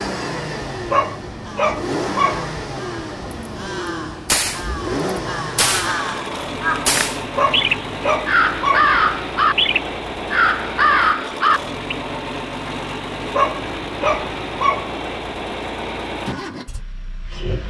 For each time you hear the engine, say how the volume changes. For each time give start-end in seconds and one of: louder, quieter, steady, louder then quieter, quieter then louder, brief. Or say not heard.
0.0-17.6 steady.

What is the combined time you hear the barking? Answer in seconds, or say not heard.
5 s.